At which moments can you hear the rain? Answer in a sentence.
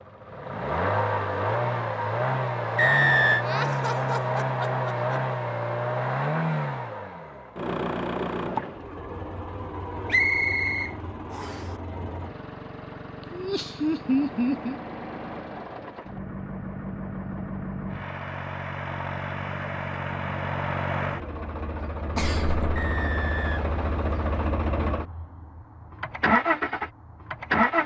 The rain can't be heard in this clip.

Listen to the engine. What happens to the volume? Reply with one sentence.
The volume of the engine goes down, then up.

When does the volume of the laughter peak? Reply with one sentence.
The loudest moment of the laughter is at 14 seconds.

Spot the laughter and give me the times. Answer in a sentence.
The laughter can be heard from 3.4 to 5.2 s, from 13.3 to 14.8 s and from 22.1 to 22.8 s.